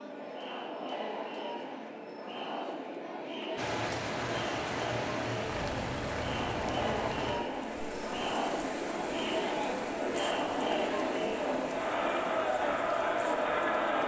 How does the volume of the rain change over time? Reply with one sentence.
The loudness of the rain goes down.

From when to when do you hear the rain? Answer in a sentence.
The rain can be heard from 3.5 to 14.0 s.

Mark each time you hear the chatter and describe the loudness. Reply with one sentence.
You can hear the chatter from 0.0 to 14.0 s, getting louder.